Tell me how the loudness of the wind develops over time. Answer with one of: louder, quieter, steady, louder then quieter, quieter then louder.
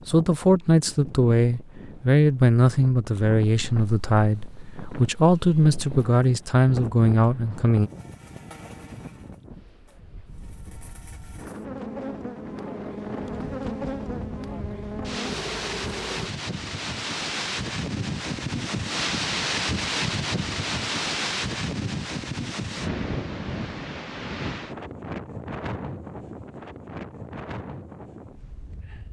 louder then quieter.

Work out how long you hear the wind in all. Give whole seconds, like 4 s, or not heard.
29 s.